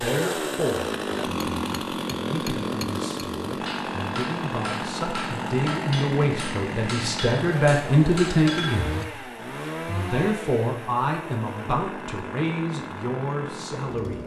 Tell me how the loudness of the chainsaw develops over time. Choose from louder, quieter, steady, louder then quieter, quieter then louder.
quieter.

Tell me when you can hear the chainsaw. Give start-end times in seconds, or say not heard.
0.0-14.2.